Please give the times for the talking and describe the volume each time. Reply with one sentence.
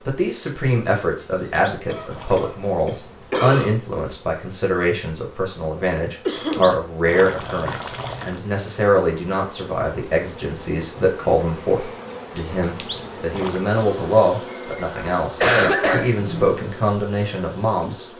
The talking can be heard from 0.1 to 18.1 s, at a steady volume.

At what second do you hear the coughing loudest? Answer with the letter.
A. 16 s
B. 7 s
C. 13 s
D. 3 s
A.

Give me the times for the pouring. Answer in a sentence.
You can hear the pouring from 1.5 to 2.5 s, from 6.3 to 8.4 s and from 12.6 to 13.6 s.